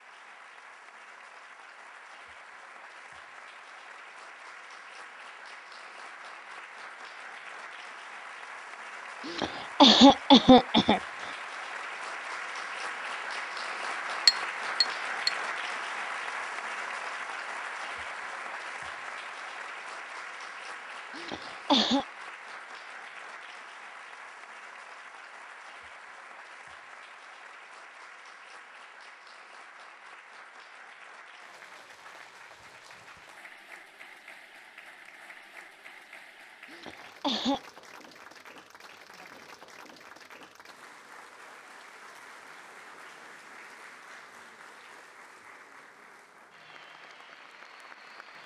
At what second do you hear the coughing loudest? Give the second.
10 s.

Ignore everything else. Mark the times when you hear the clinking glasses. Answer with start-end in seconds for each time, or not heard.
14.2-15.3.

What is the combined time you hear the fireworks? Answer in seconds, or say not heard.
not heard.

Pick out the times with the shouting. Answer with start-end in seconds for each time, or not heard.
not heard.